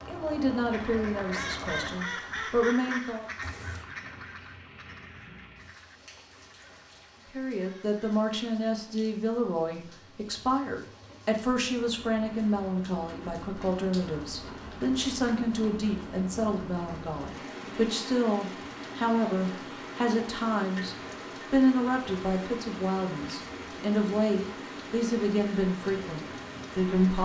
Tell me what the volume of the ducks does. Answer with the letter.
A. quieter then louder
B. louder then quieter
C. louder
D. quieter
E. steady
D.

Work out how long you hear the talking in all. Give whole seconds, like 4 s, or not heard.
23 s.